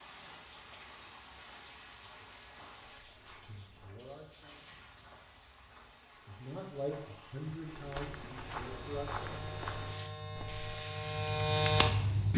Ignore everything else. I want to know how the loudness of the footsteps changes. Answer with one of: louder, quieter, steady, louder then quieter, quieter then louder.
louder.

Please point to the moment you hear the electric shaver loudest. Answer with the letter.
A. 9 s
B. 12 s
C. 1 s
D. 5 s
B.